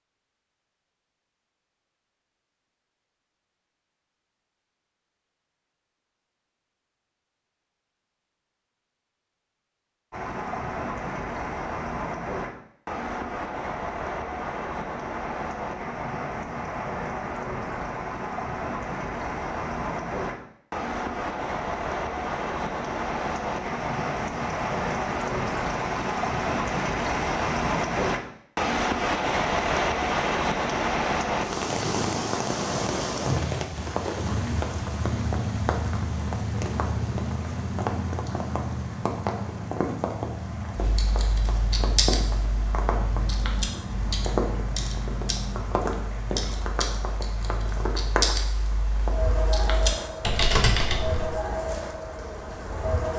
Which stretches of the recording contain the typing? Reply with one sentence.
You can hear the typing from 40.8 to 51.4 s.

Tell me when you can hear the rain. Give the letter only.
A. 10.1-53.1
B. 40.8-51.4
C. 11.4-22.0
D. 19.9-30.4
A.